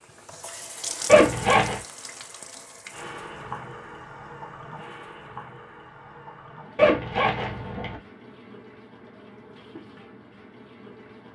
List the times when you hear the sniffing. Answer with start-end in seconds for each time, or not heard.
not heard.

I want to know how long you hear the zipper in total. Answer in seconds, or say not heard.
2 s.